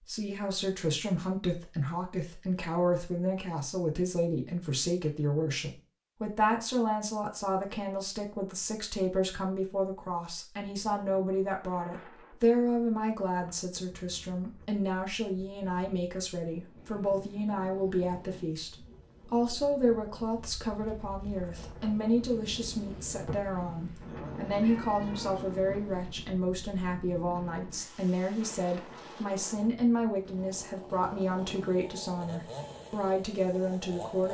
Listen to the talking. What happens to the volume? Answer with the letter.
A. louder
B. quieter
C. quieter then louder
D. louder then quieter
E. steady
E.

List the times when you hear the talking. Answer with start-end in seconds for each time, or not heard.
0.1-34.3.